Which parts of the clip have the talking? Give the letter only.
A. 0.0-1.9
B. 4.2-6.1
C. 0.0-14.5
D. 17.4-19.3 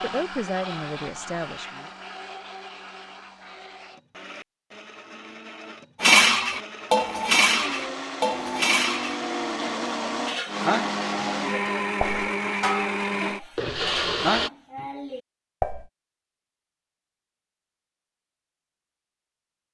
A.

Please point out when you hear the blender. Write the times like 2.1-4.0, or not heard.
0.0-14.5.